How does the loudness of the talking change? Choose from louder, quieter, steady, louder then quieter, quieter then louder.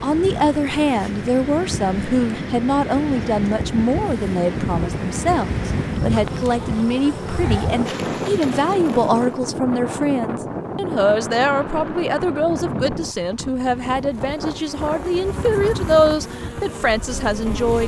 steady.